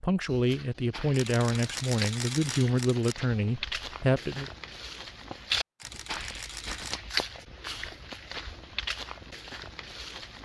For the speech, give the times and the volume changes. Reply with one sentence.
The speech can be heard from 0.0 to 4.5 s, at a steady volume.